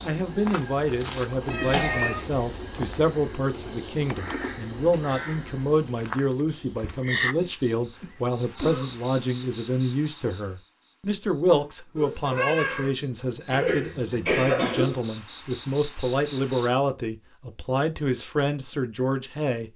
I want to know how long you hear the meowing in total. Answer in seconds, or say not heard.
2 s.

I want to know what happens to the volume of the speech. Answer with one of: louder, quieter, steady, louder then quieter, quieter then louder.
steady.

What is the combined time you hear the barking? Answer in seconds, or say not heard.
not heard.